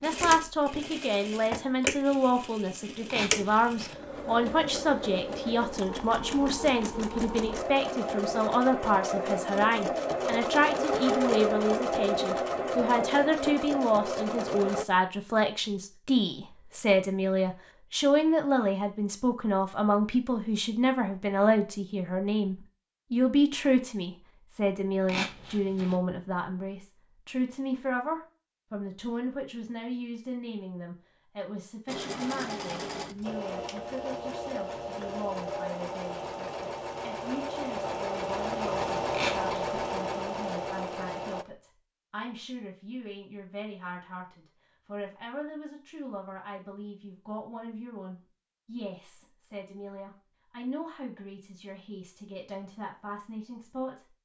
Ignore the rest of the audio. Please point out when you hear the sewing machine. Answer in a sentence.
The sewing machine can be heard from 0.0 to 14.8 s and from 31.9 to 41.5 s.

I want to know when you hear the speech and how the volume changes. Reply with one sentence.
You can hear the speech from 0.0 to 54.1 s, getting quieter.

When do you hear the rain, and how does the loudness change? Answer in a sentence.
You can't hear the rain here.